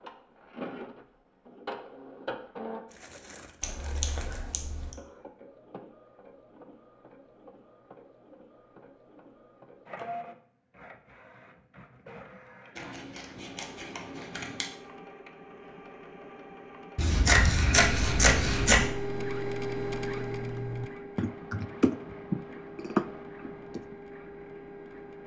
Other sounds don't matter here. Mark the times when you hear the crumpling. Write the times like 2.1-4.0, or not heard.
2.9-4.5.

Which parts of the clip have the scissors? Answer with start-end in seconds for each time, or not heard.
3.6-5.0, 12.8-14.7, 16.9-18.9.